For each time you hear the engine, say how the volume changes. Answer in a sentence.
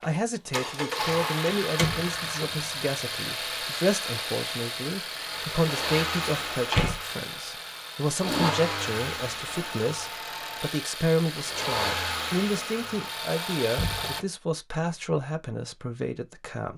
The engine can be heard from 0.0 to 14.2 s, at a steady volume.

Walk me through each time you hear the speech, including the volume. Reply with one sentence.
You can hear the speech from 0.0 to 16.7 s, at a steady volume.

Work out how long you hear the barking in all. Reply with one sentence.
You can't hear the barking here.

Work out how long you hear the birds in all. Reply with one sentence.
You can't hear the birds here.